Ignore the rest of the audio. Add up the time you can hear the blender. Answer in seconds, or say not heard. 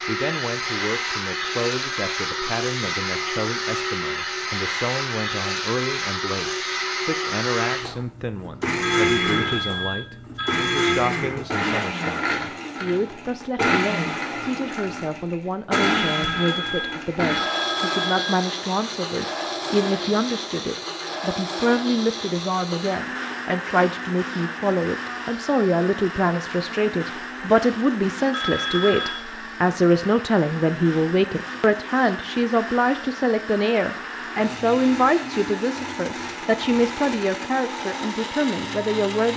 39 s.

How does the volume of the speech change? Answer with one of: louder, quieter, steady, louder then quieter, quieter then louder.
louder.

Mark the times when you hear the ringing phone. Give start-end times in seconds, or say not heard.
8.8-11.1, 15.7-18.4, 28.3-29.2.